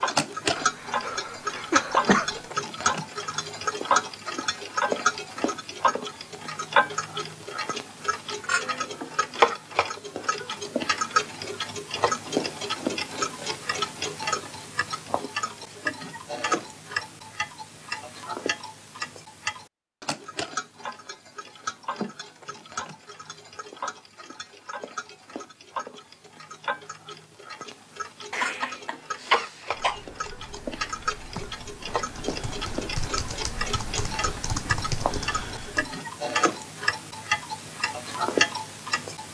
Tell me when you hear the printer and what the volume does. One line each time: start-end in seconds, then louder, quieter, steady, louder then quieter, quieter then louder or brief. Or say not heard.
not heard.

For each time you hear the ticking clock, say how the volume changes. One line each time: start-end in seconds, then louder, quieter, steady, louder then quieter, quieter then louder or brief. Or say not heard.
0.0-39.2 quieter then louder.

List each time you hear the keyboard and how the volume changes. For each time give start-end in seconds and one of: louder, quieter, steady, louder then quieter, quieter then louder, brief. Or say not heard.
29.7-36.0 louder.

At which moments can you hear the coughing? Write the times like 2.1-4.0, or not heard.
0.6-2.4, 28.3-30.0.